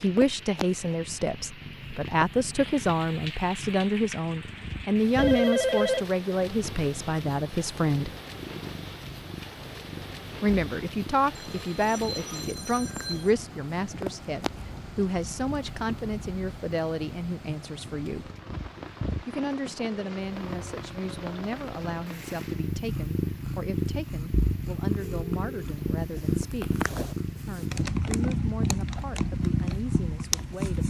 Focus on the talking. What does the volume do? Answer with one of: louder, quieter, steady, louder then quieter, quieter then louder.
quieter.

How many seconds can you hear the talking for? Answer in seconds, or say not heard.
27 s.